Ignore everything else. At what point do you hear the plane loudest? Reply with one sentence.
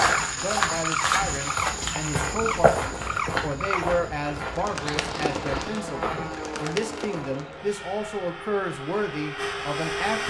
The volume of the plane peaks at 10 seconds.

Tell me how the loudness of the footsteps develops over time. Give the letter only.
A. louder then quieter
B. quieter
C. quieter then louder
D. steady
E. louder
B.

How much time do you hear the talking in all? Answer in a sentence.
The talking can be heard for 10 seconds in total.